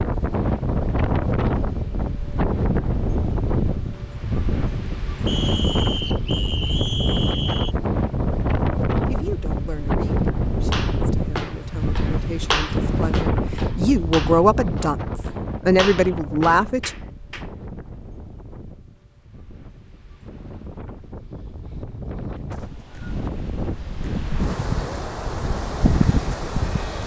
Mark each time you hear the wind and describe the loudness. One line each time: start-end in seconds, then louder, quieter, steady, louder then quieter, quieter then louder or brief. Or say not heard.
0.0-27.0 quieter then louder.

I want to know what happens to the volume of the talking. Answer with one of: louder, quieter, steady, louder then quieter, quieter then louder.
louder.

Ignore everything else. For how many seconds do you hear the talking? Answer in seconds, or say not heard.
8 s.